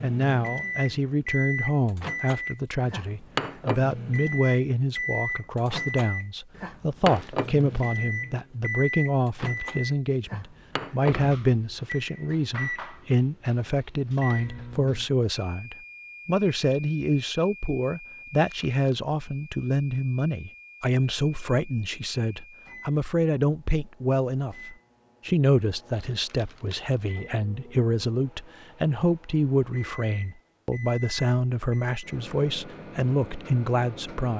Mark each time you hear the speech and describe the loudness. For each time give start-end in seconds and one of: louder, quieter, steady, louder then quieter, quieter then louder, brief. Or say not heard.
0.0-34.3 steady.